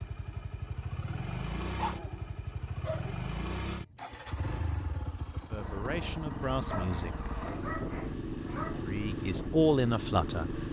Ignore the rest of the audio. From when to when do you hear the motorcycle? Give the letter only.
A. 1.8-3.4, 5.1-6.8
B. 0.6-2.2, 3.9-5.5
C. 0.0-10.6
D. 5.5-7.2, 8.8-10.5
C.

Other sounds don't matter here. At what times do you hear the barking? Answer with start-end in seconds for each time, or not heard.
1.4-3.1, 6.7-8.8.